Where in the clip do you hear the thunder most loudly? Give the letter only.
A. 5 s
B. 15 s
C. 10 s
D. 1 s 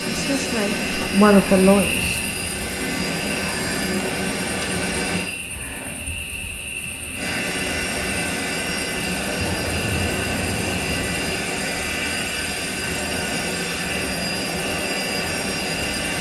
C.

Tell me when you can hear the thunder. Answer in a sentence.
The thunder can be heard from 9.4 to 11.4 s.